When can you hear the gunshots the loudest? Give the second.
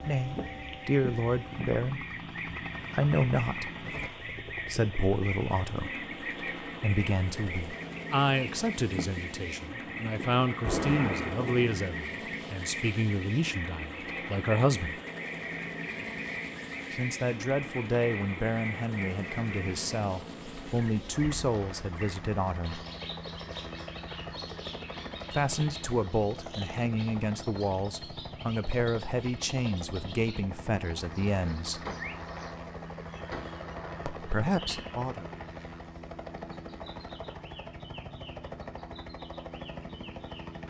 11 s.